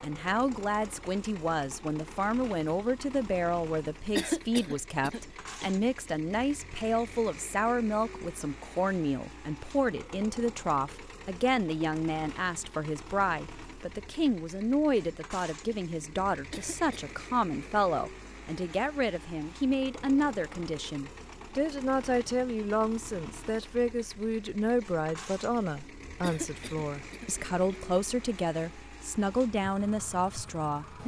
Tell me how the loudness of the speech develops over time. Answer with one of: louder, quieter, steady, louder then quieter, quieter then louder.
steady.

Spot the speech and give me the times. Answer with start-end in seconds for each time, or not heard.
0.0-31.0.